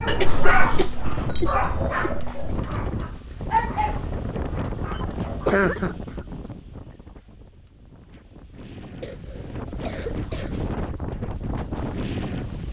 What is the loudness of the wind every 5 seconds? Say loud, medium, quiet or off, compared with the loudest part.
loud, medium, loud.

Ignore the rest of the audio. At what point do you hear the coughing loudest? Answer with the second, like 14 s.
6 s.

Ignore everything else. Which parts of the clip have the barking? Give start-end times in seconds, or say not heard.
0.0-5.5.